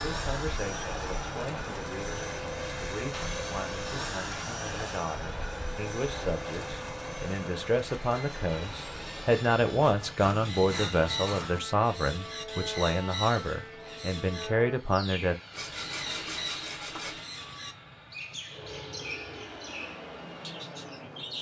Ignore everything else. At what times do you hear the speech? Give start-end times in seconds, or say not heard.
0.0-15.3.